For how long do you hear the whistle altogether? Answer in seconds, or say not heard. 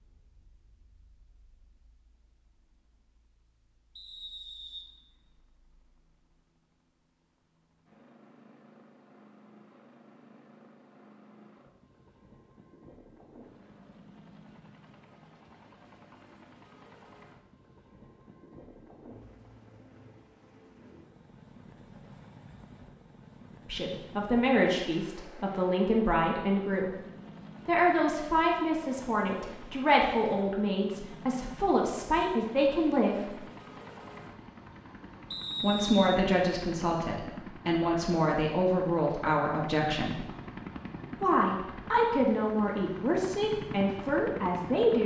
2 s.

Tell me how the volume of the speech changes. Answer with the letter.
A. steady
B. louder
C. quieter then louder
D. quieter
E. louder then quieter
A.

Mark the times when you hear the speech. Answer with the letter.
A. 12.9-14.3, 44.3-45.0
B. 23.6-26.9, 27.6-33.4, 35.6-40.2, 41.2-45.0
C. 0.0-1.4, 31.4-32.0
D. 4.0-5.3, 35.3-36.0
B.